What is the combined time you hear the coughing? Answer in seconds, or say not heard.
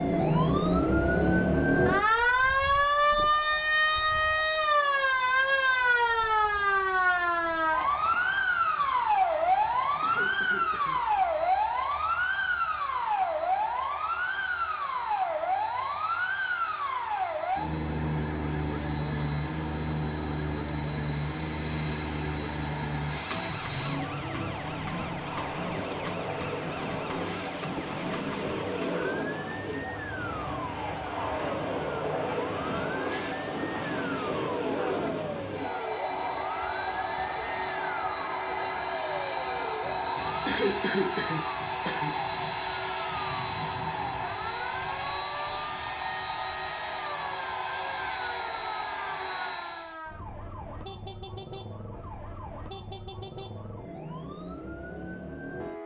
3 s.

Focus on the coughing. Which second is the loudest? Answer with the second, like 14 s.
41 s.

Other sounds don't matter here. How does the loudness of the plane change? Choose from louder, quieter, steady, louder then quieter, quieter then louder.
louder.